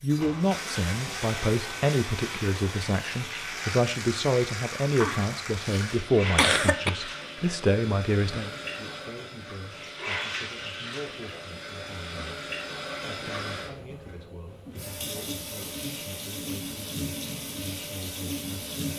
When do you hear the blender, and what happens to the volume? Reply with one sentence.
The blender can't be heard in this clip.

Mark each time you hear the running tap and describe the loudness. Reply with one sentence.
The running tap can be heard from 0.0 to 18.9 s, at a steady volume.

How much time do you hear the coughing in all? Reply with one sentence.
The coughing can be heard for 2 seconds in total.